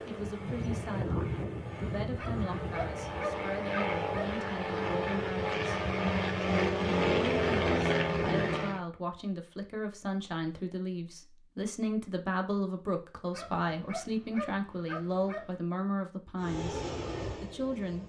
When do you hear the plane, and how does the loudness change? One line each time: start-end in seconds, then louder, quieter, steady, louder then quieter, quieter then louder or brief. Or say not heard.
0.0-8.8 louder
16.4-18.0 brief.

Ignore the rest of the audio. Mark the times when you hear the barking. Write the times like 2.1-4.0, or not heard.
2.1-4.4, 13.3-15.6.